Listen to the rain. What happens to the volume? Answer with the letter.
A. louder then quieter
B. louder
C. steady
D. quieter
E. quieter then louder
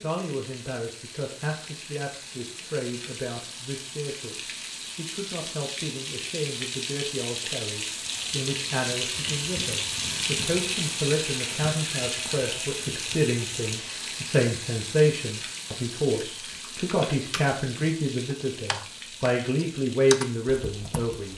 A.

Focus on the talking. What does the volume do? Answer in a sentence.
The loudness of the talking goes up.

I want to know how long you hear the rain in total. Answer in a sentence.
The rain can be heard for 21 seconds in total.